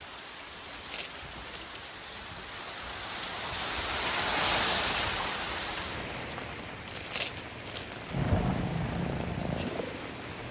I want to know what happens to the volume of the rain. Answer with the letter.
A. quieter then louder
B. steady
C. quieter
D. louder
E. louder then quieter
E.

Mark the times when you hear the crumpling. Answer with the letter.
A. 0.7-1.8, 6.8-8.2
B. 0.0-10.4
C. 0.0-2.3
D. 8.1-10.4
A.